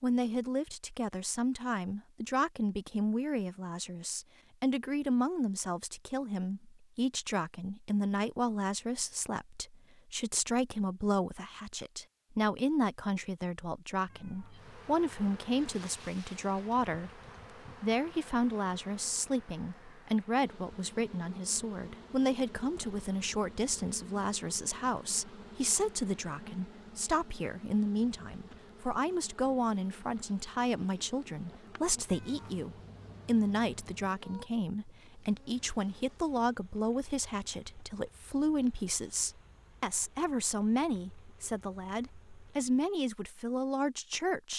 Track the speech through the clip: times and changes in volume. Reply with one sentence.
You can hear the speech from 0.0 to 17.2 s, at a steady volume; and from 17.8 to 44.5 s, at a steady volume.